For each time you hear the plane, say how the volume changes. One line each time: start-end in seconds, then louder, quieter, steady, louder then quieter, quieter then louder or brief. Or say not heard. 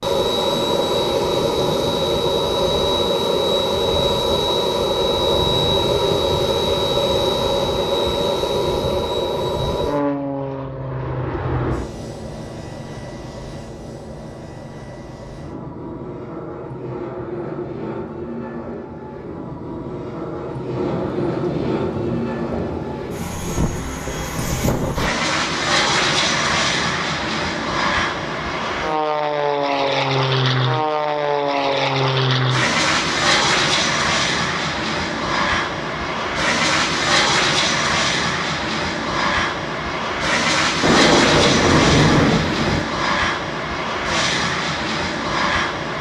0.0-45.9 quieter then louder.